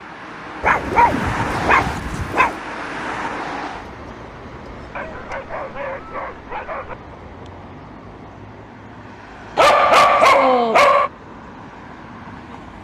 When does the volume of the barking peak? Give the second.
10 s.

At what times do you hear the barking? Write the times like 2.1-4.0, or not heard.
0.6-2.5, 5.0-7.0, 9.6-11.1.